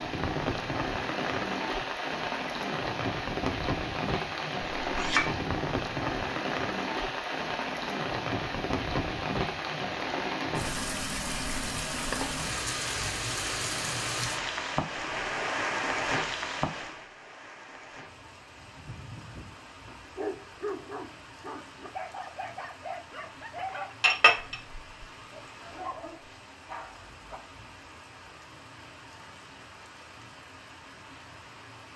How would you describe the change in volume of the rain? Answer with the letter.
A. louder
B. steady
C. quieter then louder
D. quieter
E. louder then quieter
D.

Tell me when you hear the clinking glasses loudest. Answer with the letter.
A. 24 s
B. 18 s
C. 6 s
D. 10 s
A.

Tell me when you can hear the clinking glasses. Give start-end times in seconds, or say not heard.
4.8-5.3, 24.0-24.6.